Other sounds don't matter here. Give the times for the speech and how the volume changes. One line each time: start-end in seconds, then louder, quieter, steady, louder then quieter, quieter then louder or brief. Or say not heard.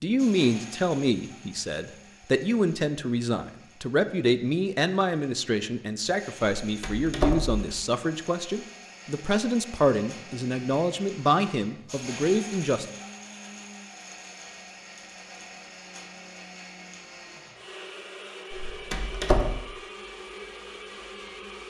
0.0-12.8 steady.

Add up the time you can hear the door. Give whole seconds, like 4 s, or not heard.
2 s.